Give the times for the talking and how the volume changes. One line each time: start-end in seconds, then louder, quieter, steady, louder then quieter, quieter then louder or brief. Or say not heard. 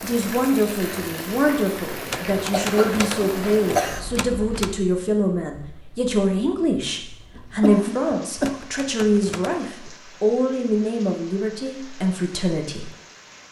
0.0-12.9 steady.